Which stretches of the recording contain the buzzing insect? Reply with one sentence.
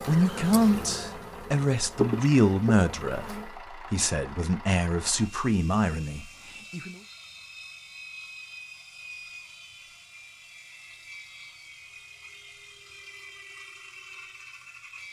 You can hear the buzzing insect from 0.0 to 3.5 s.